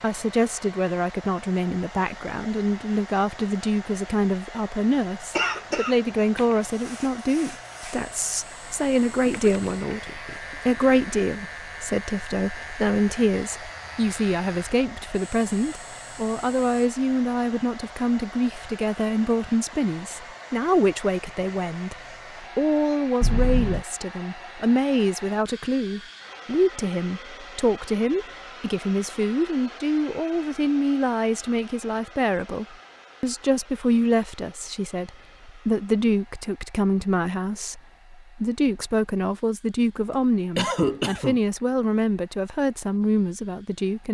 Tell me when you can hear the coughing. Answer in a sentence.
You can hear the coughing from 5.3 to 6.5 s, from 23.2 to 23.9 s and from 40.1 to 41.4 s.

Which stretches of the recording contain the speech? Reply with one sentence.
You can hear the speech from 0.0 to 44.0 s.